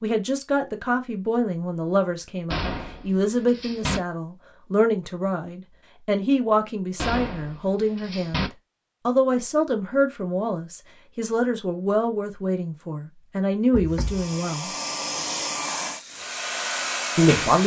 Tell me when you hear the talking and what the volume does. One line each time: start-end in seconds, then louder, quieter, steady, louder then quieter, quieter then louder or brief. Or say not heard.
0.0-14.7 steady
17.1-17.6 brief.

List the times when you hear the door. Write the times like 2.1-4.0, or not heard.
2.5-4.0, 7.0-8.5, 13.7-14.3.